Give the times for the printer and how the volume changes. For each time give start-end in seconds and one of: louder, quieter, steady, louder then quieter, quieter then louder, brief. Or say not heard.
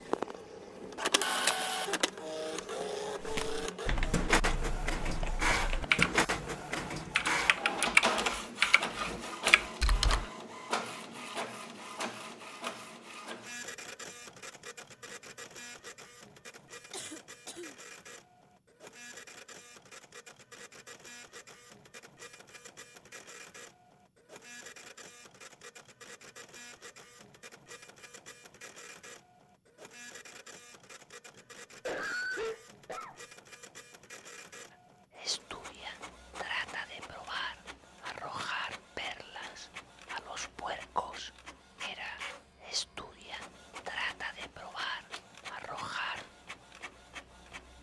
0.0-47.7 quieter.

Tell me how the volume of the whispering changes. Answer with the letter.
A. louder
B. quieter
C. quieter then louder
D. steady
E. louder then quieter
D.